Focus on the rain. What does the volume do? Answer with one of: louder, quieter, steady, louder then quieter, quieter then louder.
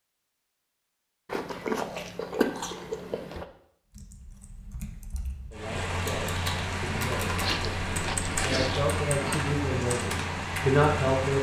steady.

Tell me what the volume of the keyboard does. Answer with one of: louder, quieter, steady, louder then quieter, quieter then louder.
louder.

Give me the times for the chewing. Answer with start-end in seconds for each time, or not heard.
1.2-3.5, 7.2-9.5.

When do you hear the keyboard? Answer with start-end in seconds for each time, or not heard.
3.9-10.8.